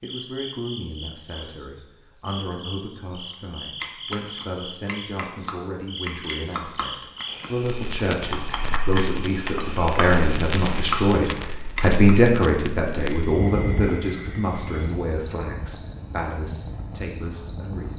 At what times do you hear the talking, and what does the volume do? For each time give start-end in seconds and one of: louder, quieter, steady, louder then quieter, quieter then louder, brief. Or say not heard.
0.0-17.9 louder then quieter.